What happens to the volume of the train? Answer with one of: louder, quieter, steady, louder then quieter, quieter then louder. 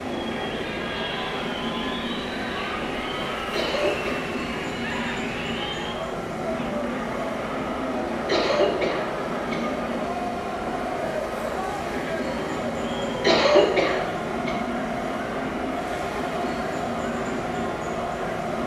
steady.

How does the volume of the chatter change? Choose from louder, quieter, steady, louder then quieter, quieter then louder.
steady.